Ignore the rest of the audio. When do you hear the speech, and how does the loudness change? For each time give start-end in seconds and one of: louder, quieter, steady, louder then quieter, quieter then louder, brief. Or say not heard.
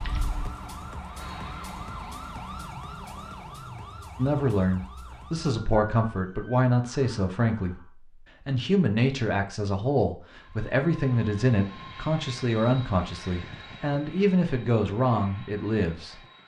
4.2-16.1 steady.